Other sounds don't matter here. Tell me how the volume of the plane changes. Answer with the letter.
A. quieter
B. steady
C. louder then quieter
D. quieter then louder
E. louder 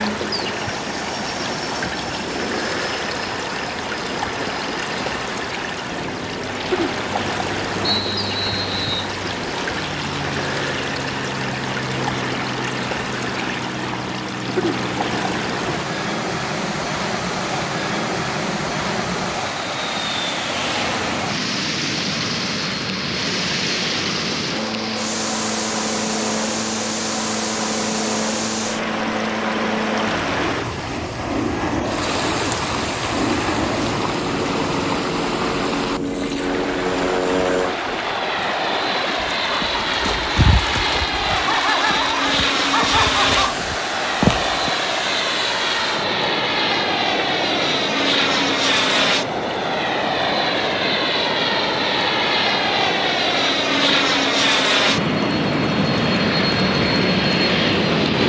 E.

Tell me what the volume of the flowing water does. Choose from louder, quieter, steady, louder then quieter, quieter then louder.
steady.